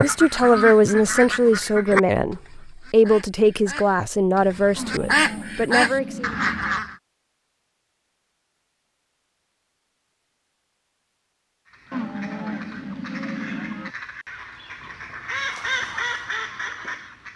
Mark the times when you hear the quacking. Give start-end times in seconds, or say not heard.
0.0-7.0, 11.7-17.3.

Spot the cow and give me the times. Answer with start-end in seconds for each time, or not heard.
4.8-6.8, 11.9-13.9.